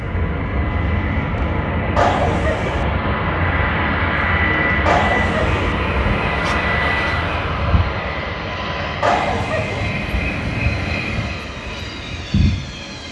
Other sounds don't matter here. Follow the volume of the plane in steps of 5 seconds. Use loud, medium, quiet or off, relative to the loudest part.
loud, loud, medium.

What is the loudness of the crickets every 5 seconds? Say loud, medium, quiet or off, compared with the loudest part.
off, loud, loud.